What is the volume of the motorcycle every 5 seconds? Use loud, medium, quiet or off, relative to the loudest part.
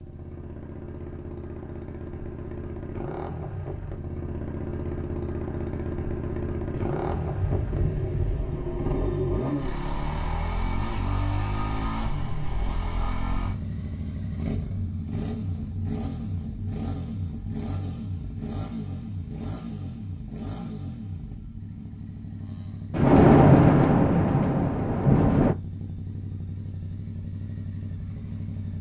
medium, loud, loud, loud, medium, medium.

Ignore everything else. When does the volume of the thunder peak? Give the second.
23 s.